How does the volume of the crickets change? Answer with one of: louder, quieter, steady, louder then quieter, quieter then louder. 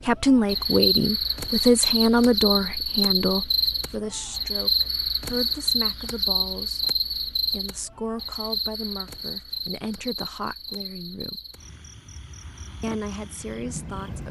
quieter.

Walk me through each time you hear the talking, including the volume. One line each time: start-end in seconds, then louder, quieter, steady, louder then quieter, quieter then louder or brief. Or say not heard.
0.1-11.4 quieter
12.8-14.2 brief.